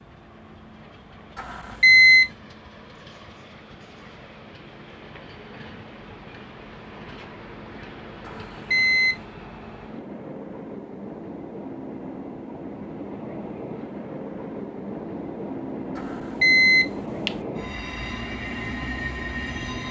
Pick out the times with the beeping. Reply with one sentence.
The beeping can be heard from 1.4 to 2.3 s, from 8.2 to 9.2 s and from 15.9 to 17.3 s.